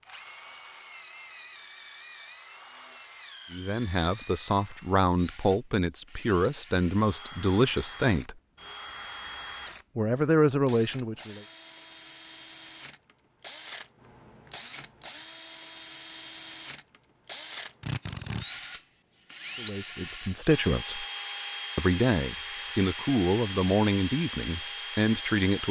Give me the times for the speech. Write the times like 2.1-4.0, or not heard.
3.5-8.3, 9.9-11.4, 19.6-21.1, 21.8-25.6.